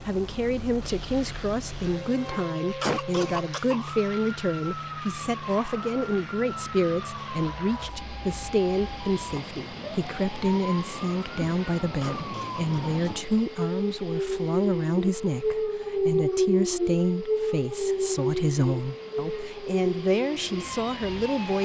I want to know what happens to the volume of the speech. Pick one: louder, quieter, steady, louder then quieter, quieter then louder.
steady.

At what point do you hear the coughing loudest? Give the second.
3 s.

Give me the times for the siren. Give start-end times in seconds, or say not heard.
0.0-21.6.